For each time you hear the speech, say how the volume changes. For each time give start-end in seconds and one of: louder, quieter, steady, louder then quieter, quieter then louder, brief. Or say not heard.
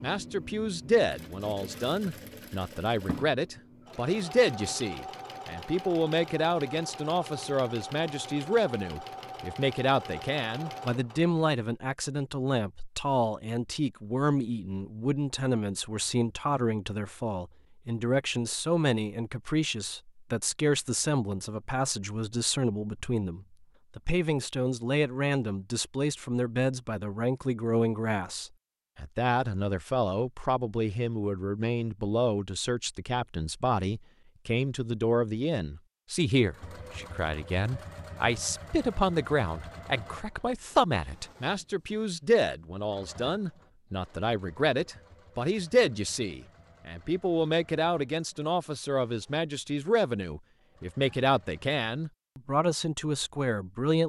0.0-54.0 steady.